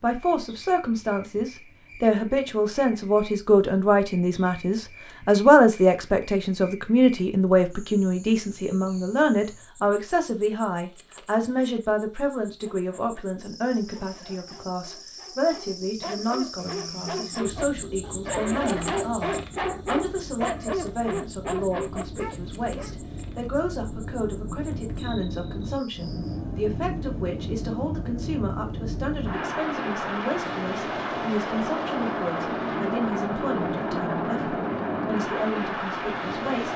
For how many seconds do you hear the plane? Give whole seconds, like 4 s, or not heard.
20 s.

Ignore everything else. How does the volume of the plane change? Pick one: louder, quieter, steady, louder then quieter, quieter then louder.
louder.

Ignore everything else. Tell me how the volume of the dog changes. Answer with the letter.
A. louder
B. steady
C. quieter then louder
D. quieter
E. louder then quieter
A.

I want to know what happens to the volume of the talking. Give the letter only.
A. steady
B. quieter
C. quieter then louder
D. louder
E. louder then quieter
B.